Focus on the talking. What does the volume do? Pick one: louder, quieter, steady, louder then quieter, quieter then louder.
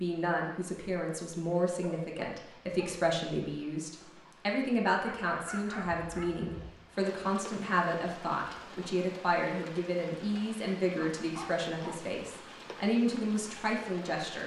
steady.